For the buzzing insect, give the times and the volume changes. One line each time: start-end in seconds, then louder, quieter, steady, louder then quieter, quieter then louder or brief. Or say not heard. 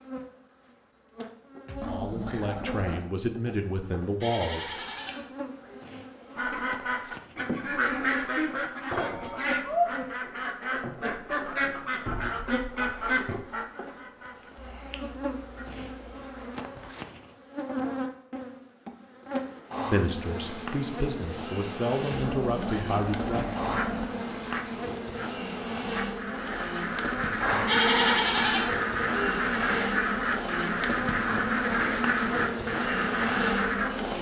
0.0-34.1 louder.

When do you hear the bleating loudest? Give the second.
28 s.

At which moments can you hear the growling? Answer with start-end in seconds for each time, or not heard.
1.6-3.1, 22.1-24.1.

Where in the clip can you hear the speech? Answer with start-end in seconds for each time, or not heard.
1.8-4.7, 19.9-23.6.